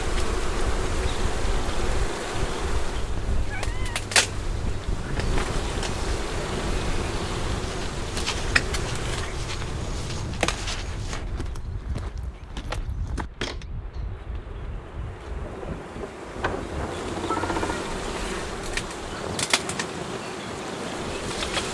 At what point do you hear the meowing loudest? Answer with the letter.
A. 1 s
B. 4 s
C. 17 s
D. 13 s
C.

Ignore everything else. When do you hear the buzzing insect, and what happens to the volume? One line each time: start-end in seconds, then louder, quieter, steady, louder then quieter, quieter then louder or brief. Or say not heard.
0.0-21.6 quieter then louder.